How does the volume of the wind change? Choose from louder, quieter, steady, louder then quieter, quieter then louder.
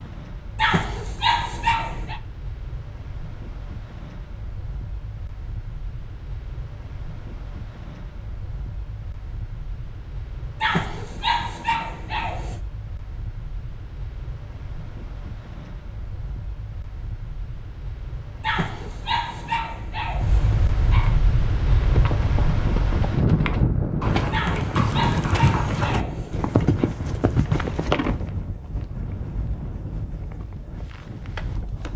louder then quieter.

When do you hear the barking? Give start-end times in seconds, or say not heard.
0.6-2.2, 10.6-12.6, 18.4-21.1, 24.3-26.9.